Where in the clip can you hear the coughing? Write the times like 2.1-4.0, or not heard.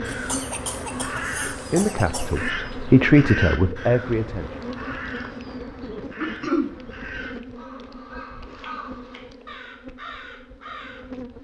0.1-2.8, 6.2-6.7.